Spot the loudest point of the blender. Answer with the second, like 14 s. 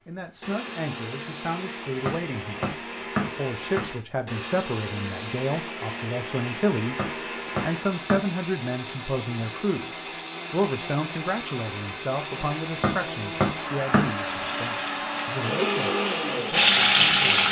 16 s.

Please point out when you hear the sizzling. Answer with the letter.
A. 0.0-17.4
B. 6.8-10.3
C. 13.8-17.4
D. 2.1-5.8
C.